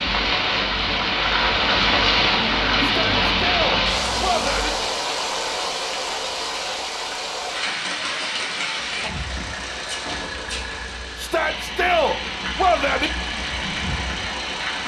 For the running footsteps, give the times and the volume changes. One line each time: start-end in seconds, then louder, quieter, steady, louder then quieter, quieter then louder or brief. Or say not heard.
not heard.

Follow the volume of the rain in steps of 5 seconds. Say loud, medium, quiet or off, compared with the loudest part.
loud, medium, medium.